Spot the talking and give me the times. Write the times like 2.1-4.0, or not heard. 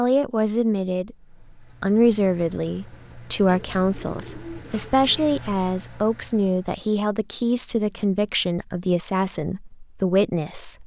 0.0-10.8.